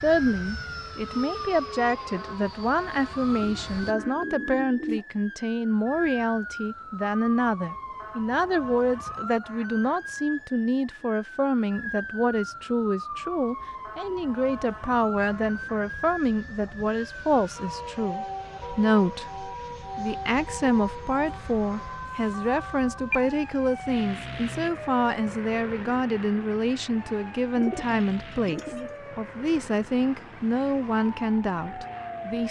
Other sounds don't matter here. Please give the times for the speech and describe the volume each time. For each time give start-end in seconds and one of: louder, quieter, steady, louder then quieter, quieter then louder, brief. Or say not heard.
0.0-32.4 steady.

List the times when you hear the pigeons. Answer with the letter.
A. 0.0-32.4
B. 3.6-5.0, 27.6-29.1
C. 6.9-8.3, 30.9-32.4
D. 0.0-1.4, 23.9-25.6
B.